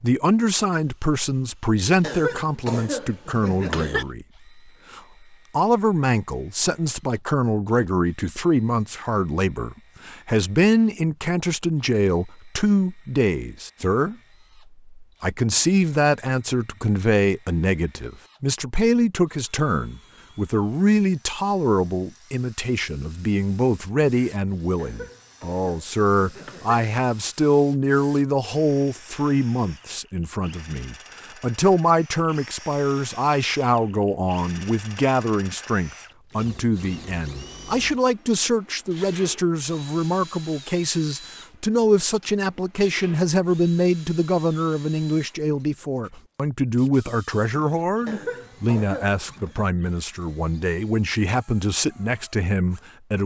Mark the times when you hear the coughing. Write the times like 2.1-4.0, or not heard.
2.0-4.0, 24.8-26.8, 48.0-49.5.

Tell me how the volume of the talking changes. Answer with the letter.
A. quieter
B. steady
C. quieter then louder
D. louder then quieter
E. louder
B.